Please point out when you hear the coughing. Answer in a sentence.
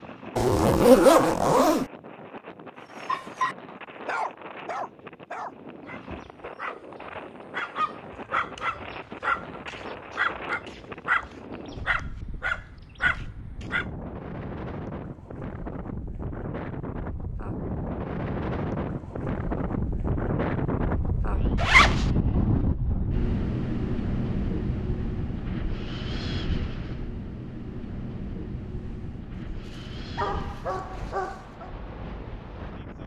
The coughing can't be heard in this clip.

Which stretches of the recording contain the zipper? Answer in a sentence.
The zipper can be heard from 0.3 to 1.9 s and from 21.6 to 22.1 s.